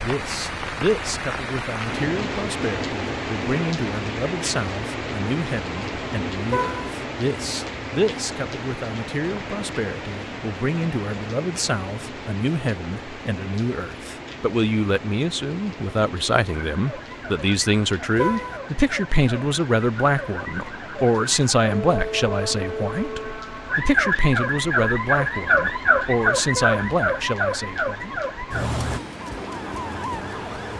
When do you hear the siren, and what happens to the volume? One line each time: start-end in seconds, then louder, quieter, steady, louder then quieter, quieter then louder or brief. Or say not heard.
16.7-30.7 louder then quieter.